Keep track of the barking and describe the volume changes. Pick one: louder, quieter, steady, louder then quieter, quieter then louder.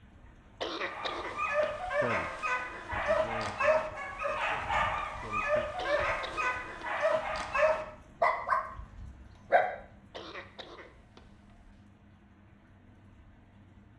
steady.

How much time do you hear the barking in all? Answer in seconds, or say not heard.
9 s.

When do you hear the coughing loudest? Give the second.
1 s.